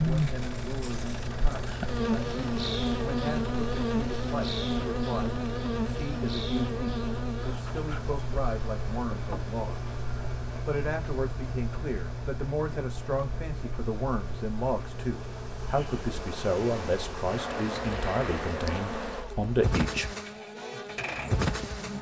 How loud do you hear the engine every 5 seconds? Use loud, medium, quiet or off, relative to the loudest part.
loud, loud, loud, medium, loud.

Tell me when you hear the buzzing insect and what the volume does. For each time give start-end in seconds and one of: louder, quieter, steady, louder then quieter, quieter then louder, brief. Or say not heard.
0.0-21.9 quieter then louder.